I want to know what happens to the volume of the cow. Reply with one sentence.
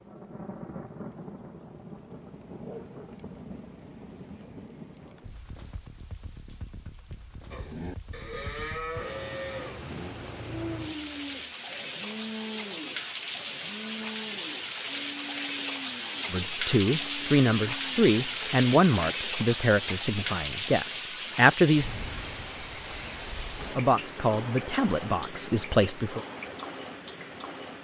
The loudness of the cow goes down.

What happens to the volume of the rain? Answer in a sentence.
The loudness of the rain goes up, then down.